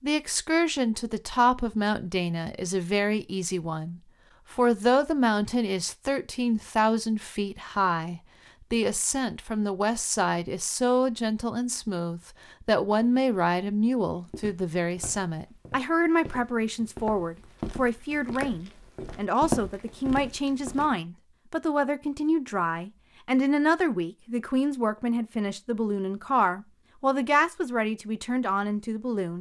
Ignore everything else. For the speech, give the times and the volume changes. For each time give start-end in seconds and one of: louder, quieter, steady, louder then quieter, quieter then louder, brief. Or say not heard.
0.0-29.3 steady.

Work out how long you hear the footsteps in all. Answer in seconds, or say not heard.
7 s.